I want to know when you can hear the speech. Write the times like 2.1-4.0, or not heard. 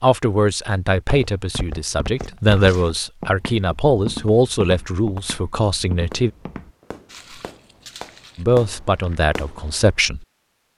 0.0-6.3, 8.3-10.2.